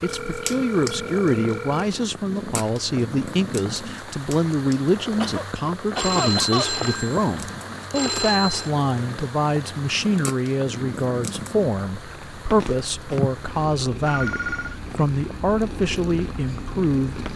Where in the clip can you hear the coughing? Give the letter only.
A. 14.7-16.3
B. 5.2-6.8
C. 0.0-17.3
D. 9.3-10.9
B.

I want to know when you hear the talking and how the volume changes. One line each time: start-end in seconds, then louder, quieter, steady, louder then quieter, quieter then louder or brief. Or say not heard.
0.0-17.3 steady.